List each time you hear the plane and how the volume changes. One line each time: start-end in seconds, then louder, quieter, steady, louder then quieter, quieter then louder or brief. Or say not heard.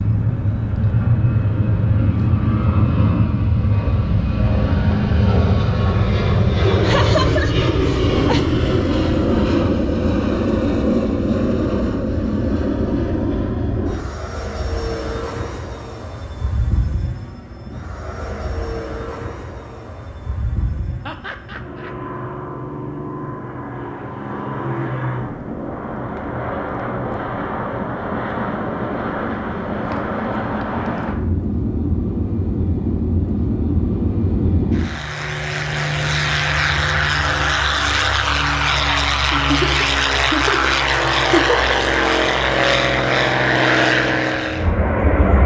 0.0-45.4 quieter then louder.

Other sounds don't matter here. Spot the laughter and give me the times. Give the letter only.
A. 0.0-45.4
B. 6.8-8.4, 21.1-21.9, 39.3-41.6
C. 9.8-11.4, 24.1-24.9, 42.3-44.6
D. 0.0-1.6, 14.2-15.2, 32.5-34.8
B.